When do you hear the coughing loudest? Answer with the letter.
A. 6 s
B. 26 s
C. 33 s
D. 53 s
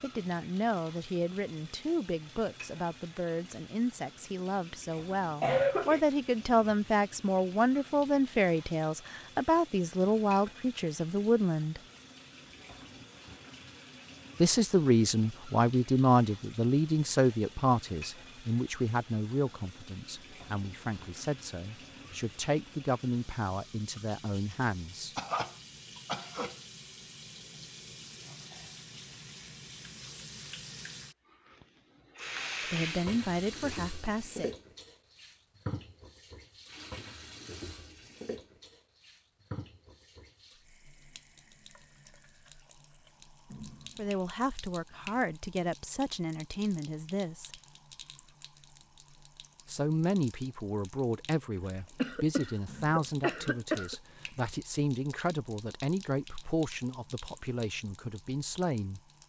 A.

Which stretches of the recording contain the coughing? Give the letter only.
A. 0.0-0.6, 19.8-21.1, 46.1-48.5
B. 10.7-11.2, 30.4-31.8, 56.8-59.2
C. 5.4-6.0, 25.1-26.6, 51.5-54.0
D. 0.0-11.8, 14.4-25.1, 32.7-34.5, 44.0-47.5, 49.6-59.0
C.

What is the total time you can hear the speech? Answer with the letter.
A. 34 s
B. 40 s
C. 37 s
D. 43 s
C.